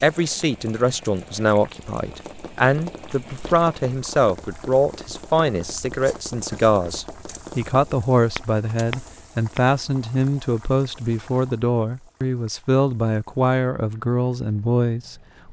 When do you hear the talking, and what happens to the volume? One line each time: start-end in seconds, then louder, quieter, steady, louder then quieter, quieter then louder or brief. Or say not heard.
0.0-15.4 steady.